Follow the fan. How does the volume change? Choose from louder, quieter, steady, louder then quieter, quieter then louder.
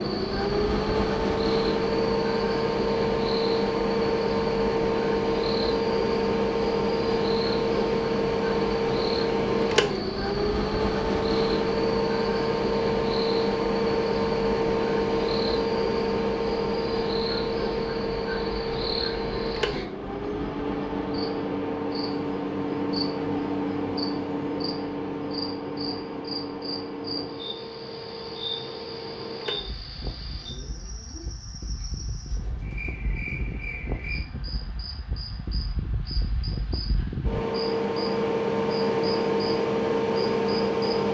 quieter then louder.